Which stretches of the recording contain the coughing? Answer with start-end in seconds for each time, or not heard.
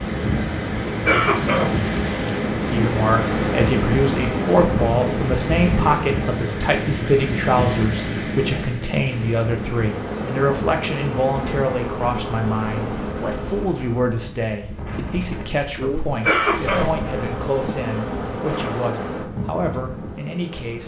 1.1-2.2, 16.2-16.9.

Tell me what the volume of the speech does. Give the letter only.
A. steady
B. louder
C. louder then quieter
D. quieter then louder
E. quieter
E.